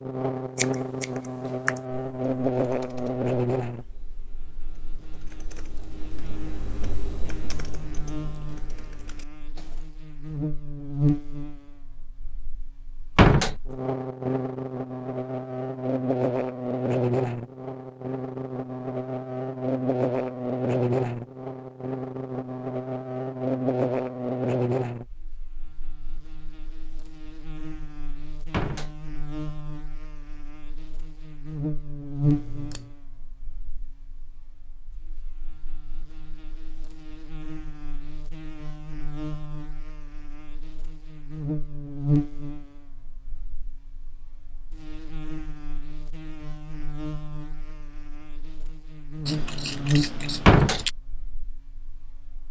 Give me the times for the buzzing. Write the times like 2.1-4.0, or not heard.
0.0-52.4.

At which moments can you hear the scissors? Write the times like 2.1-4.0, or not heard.
0.6-1.6, 32.2-33.0, 49.2-50.9.